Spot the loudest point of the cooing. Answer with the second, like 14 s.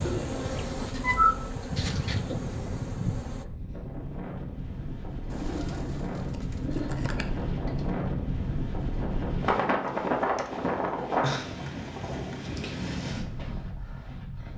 1 s.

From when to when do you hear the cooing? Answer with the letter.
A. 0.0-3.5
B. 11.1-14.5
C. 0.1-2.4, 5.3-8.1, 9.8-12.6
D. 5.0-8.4
C.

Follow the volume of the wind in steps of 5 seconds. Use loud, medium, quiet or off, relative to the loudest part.
medium, loud, loud.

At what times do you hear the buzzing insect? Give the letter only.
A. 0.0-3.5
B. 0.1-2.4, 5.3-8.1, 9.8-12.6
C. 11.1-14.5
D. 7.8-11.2
A.